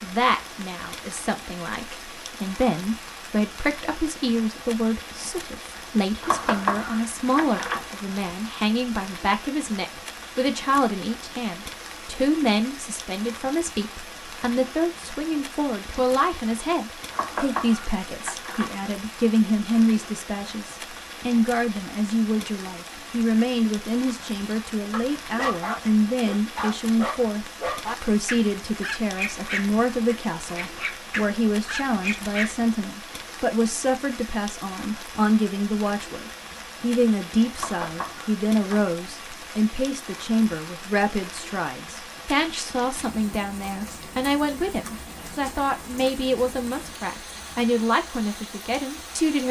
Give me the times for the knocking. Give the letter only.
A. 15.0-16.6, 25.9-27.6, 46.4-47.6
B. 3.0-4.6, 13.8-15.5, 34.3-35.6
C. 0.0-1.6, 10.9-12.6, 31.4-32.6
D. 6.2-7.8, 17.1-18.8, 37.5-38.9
D.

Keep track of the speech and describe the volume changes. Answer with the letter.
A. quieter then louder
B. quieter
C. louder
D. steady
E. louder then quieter
D.